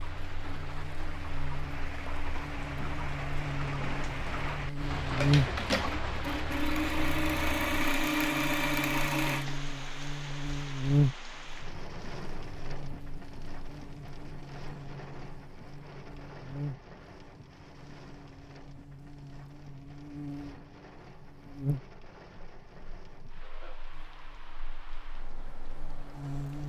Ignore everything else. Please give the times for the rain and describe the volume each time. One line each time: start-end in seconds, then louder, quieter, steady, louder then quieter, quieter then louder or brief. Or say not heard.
0.0-26.6 quieter.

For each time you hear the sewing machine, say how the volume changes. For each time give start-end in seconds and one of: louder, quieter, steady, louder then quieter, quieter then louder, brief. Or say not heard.
3.6-9.6 louder.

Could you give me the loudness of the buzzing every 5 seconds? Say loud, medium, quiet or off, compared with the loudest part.
medium, loud, loud, quiet, medium, medium.